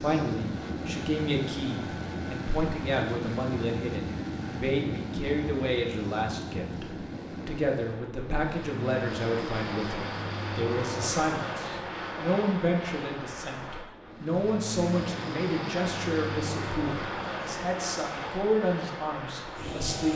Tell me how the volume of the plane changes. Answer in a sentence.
The volume of the plane stays about the same.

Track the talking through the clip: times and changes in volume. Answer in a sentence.
You can hear the talking from 0.0 to 20.0 s, at a steady volume.